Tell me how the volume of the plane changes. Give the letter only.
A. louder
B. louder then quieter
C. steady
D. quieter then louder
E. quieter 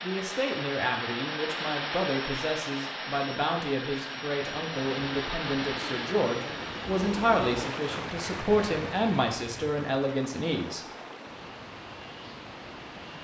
E.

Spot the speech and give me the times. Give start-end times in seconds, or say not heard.
0.0-10.8.